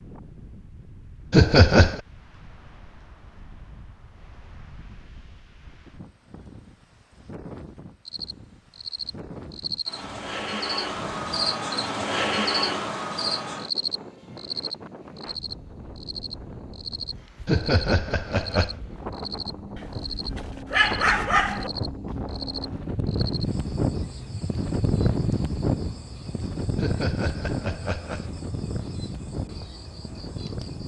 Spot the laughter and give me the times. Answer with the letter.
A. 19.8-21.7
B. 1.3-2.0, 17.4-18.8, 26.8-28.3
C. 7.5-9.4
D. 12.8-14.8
B.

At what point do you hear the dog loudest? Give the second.
21 s.